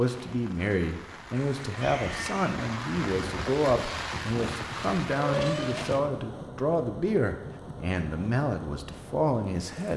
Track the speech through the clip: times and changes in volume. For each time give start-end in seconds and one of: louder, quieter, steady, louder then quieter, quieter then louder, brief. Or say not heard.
0.0-9.9 steady.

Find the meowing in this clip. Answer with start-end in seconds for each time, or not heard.
1.6-2.6, 5.2-6.1.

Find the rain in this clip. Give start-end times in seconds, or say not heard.
0.0-9.9.